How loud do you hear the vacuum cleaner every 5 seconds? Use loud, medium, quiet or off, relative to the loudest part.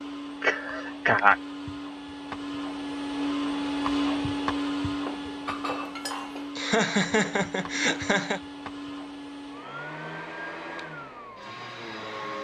loud, medium, medium.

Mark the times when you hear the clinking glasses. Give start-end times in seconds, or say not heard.
5.0-6.5.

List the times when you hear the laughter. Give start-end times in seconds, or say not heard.
0.4-1.4, 6.5-8.4.